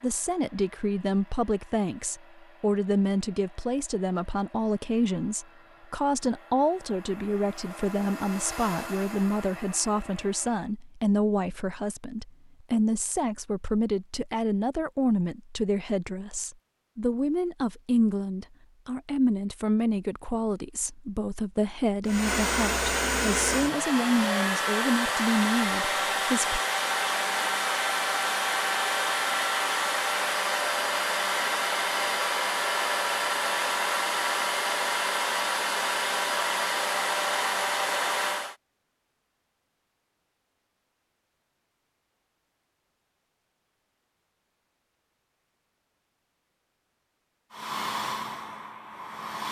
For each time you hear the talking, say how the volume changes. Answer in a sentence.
You can hear the talking from 0.0 to 26.6 s, at a steady volume.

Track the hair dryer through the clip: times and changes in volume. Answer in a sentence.
You can hear the hair dryer from 0.0 to 10.8 s, getting louder; from 22.1 to 38.5 s, at a steady volume; and briefly from 47.5 to 49.4 s.